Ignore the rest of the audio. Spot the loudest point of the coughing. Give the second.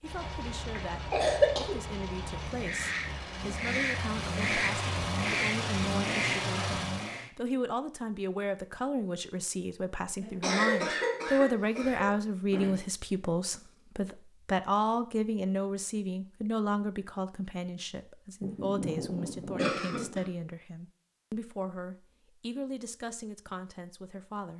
1 s.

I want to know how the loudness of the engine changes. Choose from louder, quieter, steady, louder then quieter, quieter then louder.
louder.